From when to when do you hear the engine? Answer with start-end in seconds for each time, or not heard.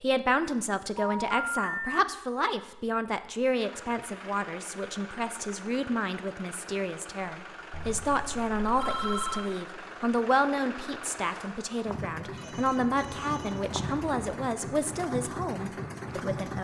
3.5-16.5.